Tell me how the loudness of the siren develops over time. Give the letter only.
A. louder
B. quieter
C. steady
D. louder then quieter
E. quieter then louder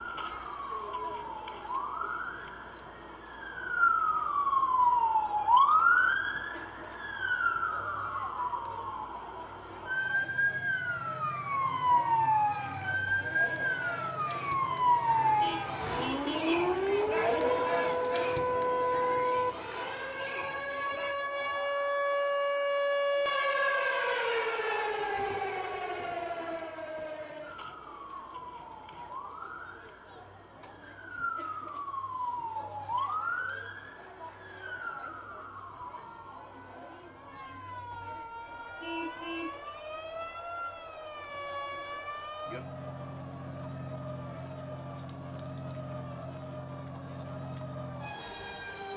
B.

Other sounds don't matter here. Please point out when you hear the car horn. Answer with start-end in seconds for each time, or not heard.
15.2-16.8, 38.8-39.6.